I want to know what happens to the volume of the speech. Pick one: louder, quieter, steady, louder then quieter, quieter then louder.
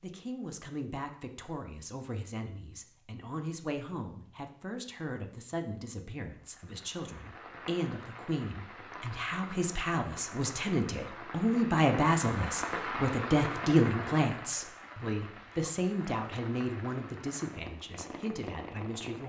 louder then quieter.